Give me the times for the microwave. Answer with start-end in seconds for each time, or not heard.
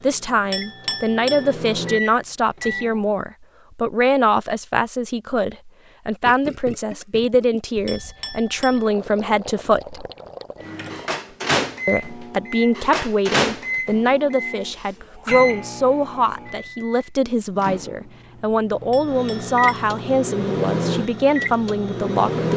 0.0-3.2, 10.6-22.5.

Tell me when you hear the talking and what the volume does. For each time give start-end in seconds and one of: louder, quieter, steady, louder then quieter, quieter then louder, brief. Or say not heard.
0.0-10.0 steady
11.8-22.5 steady.